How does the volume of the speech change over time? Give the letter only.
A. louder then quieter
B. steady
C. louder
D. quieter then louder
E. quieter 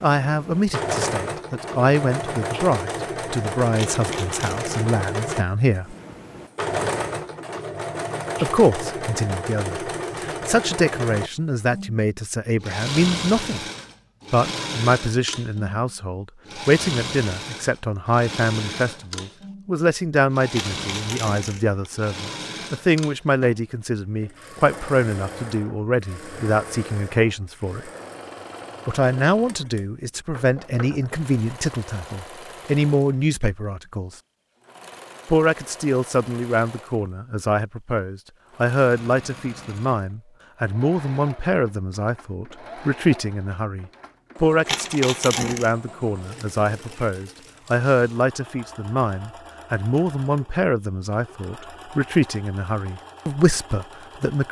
B.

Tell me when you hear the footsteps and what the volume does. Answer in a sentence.
You can't hear the footsteps here.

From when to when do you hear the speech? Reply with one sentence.
The speech can be heard from 0.0 to 6.0 s, from 8.4 to 13.7 s, from 14.3 to 27.9 s, from 28.9 to 34.1 s and from 35.2 to 54.4 s.